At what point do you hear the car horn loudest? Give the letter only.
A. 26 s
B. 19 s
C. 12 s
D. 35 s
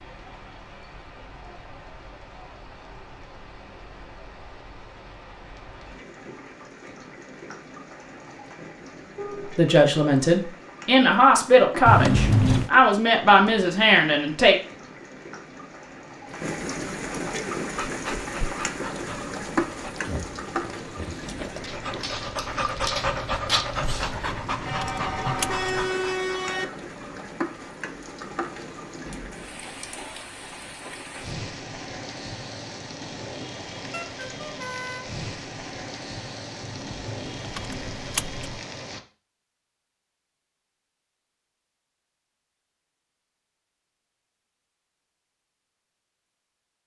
A.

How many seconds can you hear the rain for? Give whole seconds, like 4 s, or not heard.
39 s.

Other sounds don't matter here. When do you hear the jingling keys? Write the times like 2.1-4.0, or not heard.
11.8-12.7, 23.9-25.9, 36.6-38.6.